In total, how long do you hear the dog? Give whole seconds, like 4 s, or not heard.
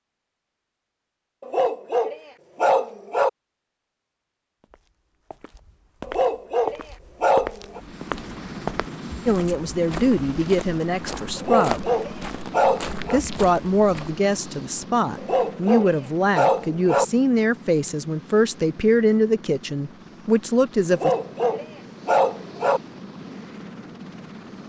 9 s.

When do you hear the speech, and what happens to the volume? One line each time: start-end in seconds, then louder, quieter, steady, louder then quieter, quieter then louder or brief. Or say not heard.
9.2-11.8 brief
13.1-21.1 steady.